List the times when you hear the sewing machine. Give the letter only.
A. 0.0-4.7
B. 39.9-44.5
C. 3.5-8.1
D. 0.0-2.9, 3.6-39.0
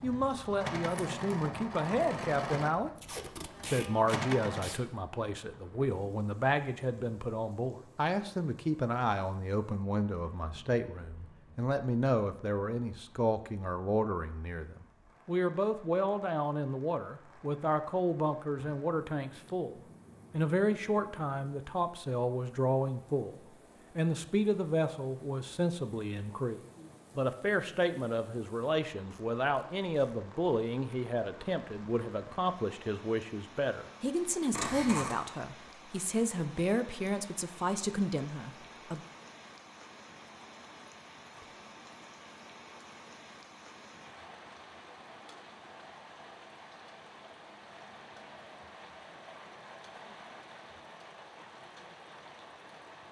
A.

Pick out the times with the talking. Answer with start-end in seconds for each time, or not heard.
0.0-2.9, 3.6-39.0.